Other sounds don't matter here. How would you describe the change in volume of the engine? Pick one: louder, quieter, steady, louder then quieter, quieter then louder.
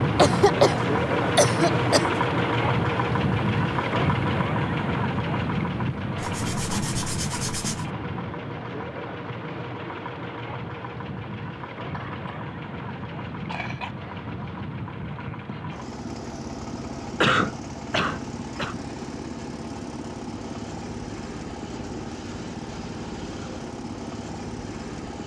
quieter.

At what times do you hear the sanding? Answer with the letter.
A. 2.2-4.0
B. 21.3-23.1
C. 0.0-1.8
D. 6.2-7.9
D.